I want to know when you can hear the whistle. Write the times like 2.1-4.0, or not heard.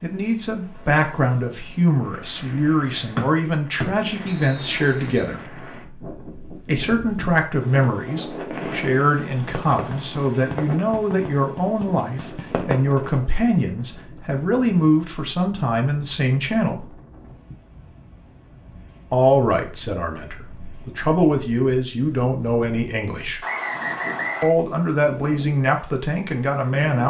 3.1-5.2, 23.4-24.5.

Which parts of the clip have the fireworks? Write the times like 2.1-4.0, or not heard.
8.5-12.8.